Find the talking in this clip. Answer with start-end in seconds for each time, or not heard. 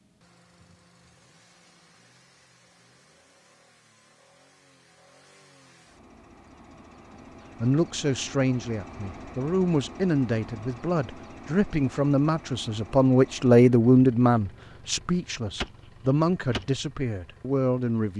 7.6-18.1.